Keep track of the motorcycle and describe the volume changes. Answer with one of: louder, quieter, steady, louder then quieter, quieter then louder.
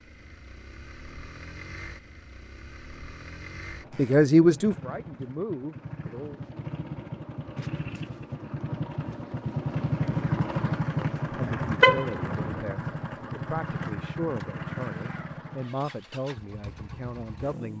louder then quieter.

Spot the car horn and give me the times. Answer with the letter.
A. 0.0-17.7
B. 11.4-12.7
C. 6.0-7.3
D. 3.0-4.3
B.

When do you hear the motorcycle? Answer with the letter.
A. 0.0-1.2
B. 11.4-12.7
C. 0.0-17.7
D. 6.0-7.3
C.